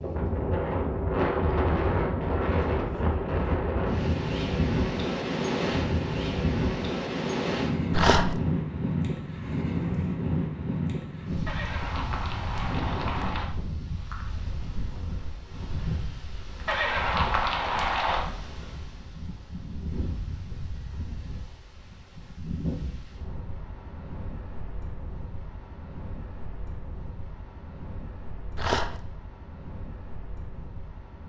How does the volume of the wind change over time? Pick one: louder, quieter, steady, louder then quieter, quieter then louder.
quieter.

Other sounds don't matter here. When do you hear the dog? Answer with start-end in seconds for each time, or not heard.
7.9-8.4, 28.6-29.0.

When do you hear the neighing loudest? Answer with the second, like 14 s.
17 s.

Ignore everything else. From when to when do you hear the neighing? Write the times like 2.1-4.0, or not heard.
11.4-13.5, 16.6-18.2.